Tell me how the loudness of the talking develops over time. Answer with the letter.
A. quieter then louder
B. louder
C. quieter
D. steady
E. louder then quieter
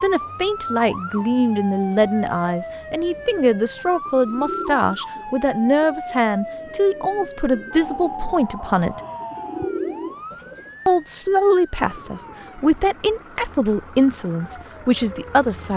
D.